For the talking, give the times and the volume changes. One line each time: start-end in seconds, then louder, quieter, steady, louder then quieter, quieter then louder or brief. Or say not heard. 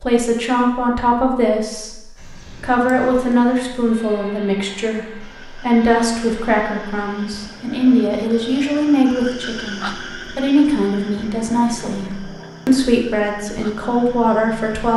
0.0-1.9 brief
2.6-14.9 steady.